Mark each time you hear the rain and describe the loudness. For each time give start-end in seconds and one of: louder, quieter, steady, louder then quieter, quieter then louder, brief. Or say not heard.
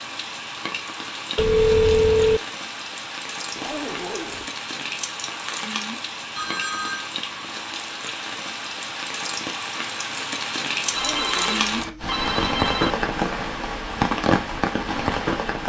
0.0-15.6 louder.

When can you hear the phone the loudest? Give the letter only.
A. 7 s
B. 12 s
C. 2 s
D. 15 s
C.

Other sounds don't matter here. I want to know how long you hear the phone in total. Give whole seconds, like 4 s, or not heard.
4 s.